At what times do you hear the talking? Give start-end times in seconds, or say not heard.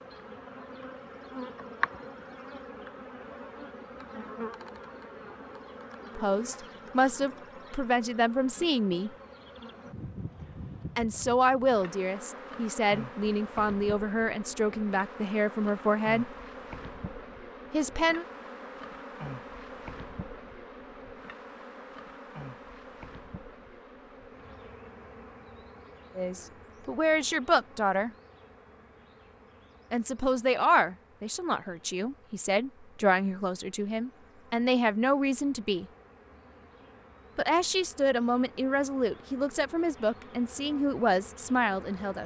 6.2-9.1, 10.9-16.3, 17.7-18.2, 26.1-28.1, 29.9-35.9, 37.4-42.2.